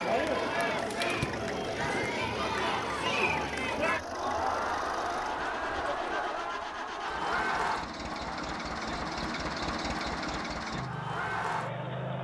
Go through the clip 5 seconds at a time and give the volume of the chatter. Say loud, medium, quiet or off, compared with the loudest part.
loud, loud, medium.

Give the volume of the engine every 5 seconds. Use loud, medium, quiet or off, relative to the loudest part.
medium, loud, loud.